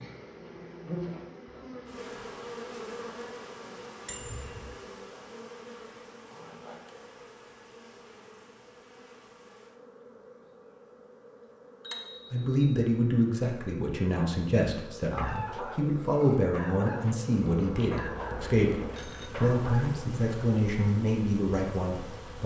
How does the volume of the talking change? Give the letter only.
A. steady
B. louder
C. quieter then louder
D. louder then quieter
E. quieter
A.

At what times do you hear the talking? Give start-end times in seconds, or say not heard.
12.3-22.4.